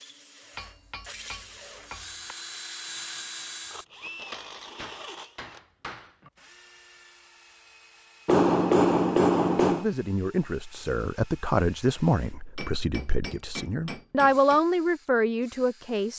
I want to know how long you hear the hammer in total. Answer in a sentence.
The hammer can be heard for 7 seconds in total.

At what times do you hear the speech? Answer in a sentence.
You can hear the speech from 9.7 to 16.1 s.